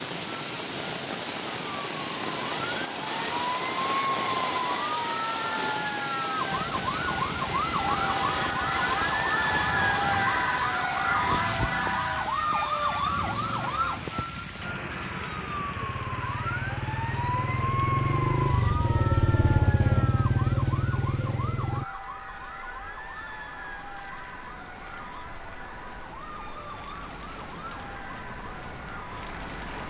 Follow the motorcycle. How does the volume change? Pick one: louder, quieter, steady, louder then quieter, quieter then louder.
louder.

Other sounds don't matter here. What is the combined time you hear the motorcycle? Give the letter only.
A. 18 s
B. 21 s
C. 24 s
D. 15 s
D.